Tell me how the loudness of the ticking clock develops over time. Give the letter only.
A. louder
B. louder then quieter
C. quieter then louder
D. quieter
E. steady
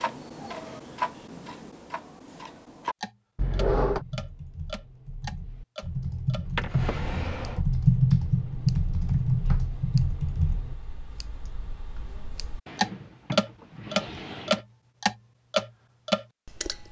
C.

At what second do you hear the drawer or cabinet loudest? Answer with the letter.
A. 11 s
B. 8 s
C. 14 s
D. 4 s
D.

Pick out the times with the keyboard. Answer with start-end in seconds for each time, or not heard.
3.9-10.8.